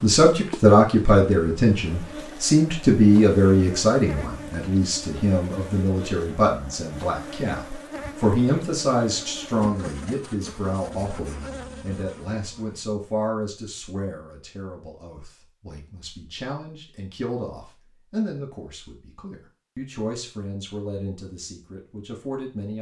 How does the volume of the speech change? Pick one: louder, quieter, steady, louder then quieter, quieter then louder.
quieter.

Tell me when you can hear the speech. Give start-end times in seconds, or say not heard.
0.0-22.7.